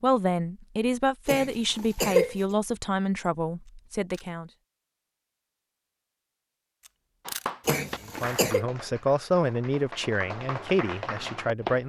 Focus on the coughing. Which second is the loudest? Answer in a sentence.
The volume of the coughing peaks at 2 seconds.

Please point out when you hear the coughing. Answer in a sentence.
The coughing can be heard from 1.2 to 2.4 s and from 7.7 to 8.7 s.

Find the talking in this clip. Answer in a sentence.
The talking can be heard from 0.0 to 4.5 s and from 8.1 to 11.8 s.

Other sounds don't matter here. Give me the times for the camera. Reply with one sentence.
You can hear the camera from 3.6 to 4.3 s and from 6.8 to 7.5 s.